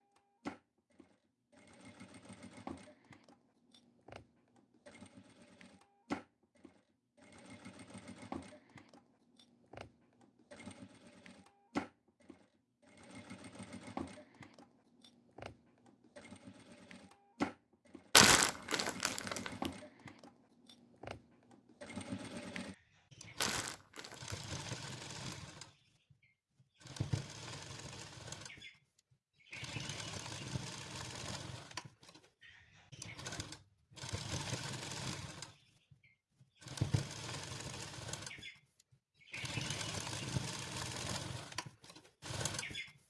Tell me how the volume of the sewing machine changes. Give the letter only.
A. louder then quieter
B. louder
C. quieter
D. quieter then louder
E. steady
B.